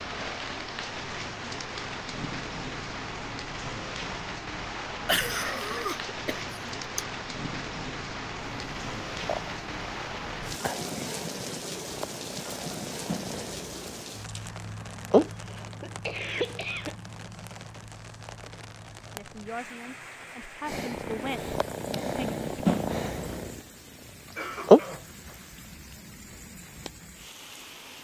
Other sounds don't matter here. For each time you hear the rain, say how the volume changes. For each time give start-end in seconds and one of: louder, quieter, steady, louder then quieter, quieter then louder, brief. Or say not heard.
0.0-27.9 quieter.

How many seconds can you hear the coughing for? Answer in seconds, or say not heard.
5 s.